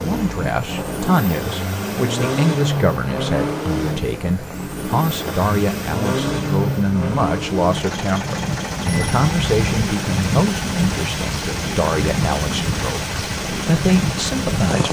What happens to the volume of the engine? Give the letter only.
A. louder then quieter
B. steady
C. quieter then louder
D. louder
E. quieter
E.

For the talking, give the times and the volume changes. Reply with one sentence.
You can hear the talking from 0.0 to 14.8 s, at a steady volume.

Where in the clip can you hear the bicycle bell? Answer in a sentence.
You can hear the bicycle bell from 8.8 to 9.8 s.